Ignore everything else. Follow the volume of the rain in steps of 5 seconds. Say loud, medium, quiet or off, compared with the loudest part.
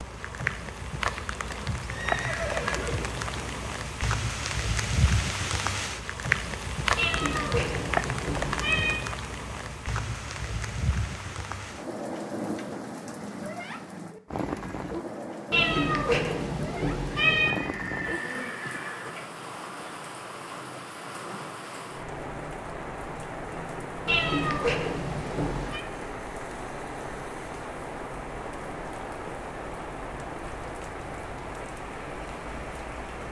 loud, loud, medium, medium, medium, medium, medium.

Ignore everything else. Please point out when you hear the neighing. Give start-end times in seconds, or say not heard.
1.9-3.6, 17.4-19.1.